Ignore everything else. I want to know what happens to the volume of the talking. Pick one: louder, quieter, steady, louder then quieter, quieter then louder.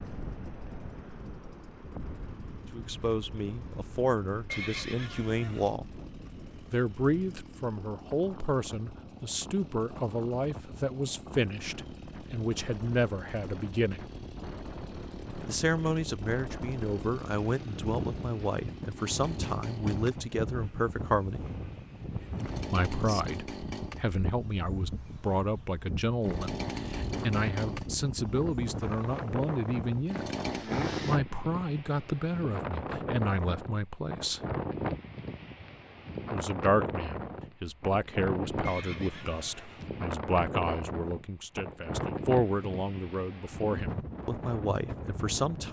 steady.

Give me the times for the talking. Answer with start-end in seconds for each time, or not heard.
2.7-5.8, 6.7-14.1, 15.4-21.4, 22.7-34.4, 36.3-45.6.